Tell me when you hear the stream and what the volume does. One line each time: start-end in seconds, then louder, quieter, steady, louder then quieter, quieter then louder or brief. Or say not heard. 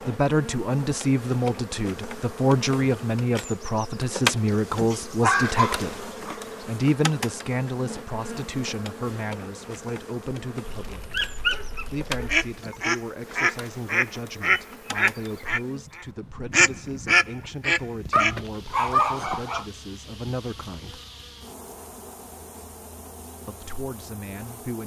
not heard.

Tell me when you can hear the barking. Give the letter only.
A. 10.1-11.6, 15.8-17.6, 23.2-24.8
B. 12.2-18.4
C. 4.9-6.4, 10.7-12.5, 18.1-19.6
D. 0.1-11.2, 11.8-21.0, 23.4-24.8
C.